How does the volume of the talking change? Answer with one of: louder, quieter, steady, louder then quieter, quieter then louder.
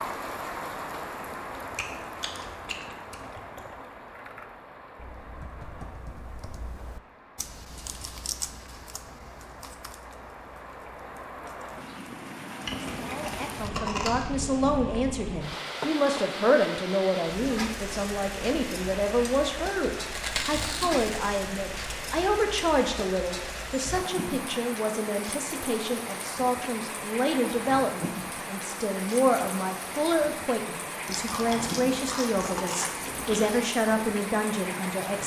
steady.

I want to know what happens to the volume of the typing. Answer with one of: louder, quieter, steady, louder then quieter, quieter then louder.
louder then quieter.